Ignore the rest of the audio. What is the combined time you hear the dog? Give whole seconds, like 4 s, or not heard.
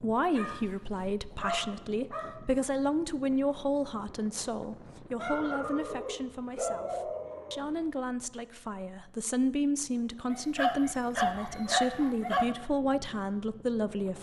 7 s.